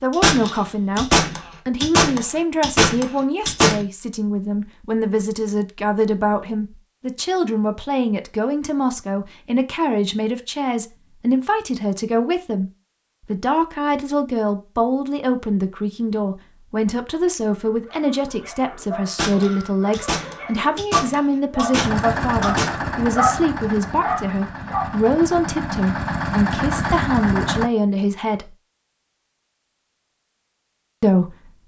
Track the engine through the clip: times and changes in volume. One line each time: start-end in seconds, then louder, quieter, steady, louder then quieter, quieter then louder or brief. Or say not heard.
21.8-27.7 quieter then louder.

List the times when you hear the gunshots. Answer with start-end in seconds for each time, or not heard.
0.1-3.9, 19.1-22.8.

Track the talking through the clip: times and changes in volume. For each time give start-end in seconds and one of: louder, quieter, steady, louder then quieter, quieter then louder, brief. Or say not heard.
0.0-28.5 steady
31.0-31.6 brief.